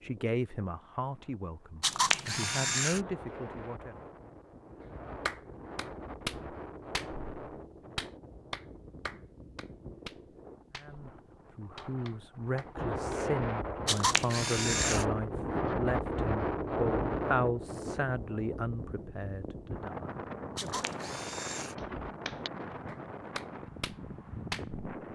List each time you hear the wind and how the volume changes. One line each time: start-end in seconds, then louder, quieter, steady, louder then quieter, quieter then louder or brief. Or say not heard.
0.0-25.1 louder then quieter.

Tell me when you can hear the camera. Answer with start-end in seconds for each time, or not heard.
1.8-3.0, 13.8-15.1, 20.6-21.8.